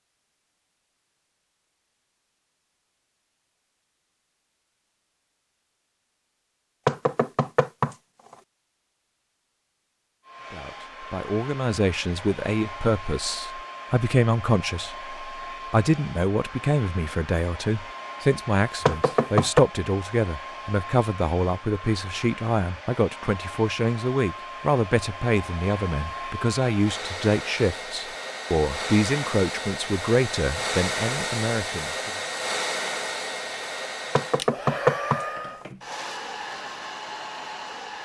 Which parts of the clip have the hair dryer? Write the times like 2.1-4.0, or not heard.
10.2-38.0.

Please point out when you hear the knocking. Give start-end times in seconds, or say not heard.
6.8-8.0, 18.9-19.6, 34.1-35.2.